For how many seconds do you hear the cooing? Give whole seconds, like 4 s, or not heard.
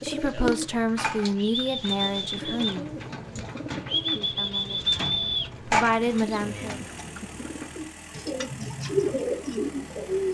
10 s.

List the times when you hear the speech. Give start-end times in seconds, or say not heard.
0.0-2.9, 4.2-6.8.